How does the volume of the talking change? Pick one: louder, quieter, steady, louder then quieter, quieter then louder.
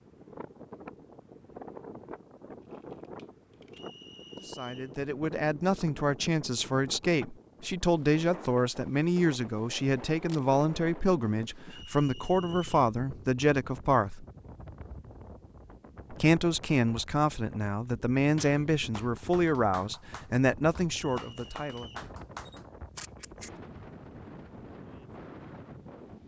steady.